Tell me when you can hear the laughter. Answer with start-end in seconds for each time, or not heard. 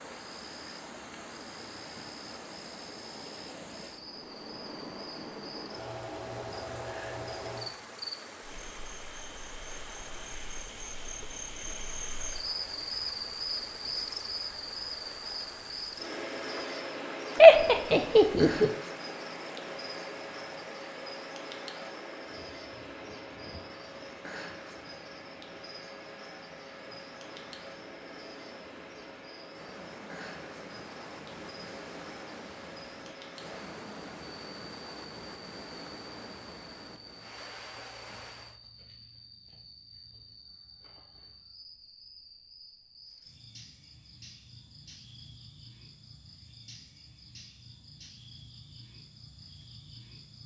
17.4-18.7.